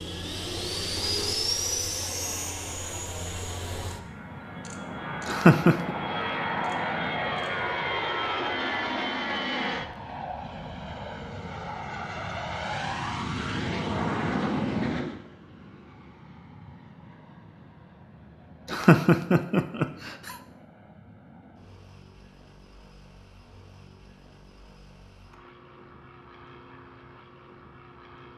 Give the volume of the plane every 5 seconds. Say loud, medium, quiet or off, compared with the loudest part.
loud, loud, loud, quiet, quiet, quiet.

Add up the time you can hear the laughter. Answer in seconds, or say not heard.
2 s.